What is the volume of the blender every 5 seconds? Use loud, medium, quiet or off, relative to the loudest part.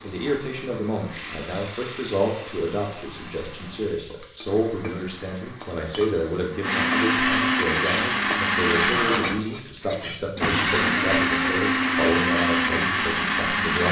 quiet, loud, loud.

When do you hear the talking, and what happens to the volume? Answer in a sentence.
You can hear the talking from 0.0 to 13.8 s, at a steady volume.